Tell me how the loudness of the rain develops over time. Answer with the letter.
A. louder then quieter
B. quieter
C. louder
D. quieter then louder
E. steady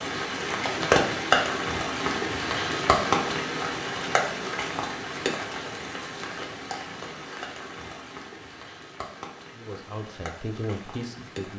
B.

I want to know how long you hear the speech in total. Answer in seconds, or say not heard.
2 s.